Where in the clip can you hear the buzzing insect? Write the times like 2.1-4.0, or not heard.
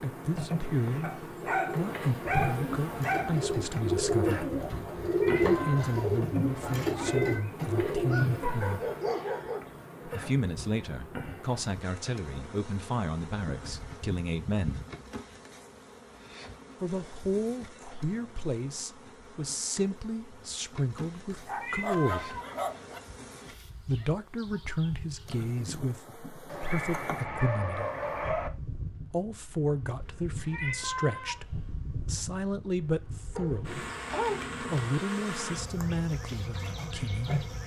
0.0-37.6.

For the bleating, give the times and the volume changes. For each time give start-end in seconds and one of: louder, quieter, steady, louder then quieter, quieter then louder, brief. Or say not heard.
not heard.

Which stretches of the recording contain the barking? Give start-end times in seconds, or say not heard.
1.0-3.4, 8.1-9.6, 13.3-14.8, 21.3-23.0, 26.4-28.5, 33.4-34.8.